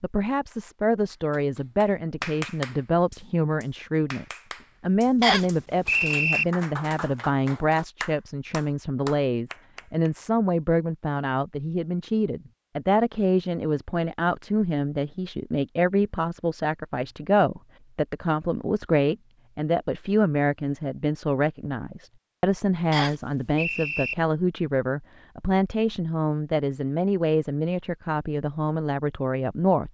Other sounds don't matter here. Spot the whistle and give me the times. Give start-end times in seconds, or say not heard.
5.2-6.5, 22.9-24.1.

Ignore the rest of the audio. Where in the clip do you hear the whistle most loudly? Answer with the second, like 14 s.
6 s.